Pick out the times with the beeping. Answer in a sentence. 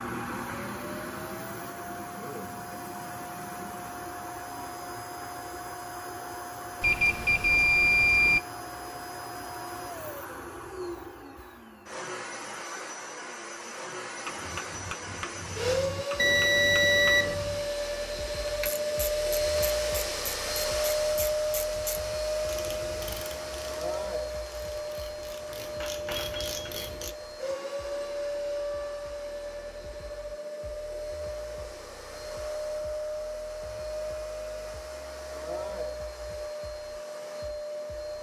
The beeping can be heard from 6.8 to 8.4 s, from 16.1 to 17.4 s and from 26.2 to 26.6 s.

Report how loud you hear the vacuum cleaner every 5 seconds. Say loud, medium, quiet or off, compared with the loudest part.
medium, medium, medium, loud, loud, medium, medium, medium.